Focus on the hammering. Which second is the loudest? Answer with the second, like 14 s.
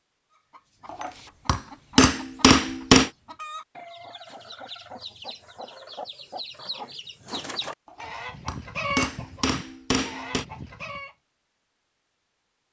3 s.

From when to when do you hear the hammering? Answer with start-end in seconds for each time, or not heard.
0.9-3.1, 7.8-10.4.